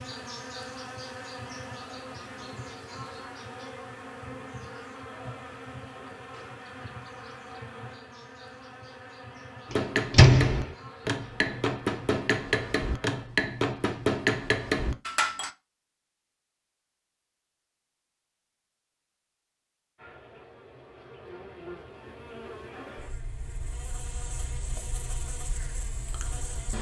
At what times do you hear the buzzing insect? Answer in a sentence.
You can hear the buzzing insect from 0.0 to 13.2 s and from 19.9 to 26.7 s.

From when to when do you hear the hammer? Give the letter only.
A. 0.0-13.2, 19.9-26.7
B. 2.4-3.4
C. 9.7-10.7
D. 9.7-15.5
D.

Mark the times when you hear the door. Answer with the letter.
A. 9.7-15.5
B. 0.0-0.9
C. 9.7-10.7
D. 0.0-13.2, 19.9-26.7
C.